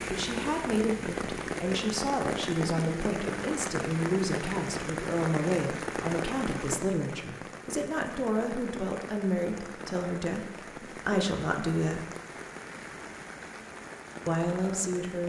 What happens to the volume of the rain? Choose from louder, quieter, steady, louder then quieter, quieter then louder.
quieter.